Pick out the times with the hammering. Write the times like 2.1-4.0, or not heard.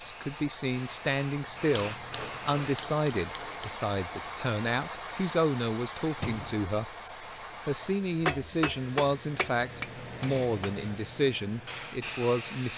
1.8-3.8, 8.1-10.8.